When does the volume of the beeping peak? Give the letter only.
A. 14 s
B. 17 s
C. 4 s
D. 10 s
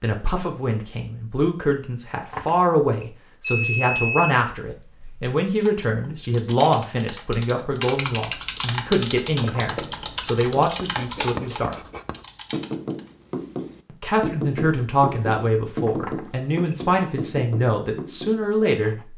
C.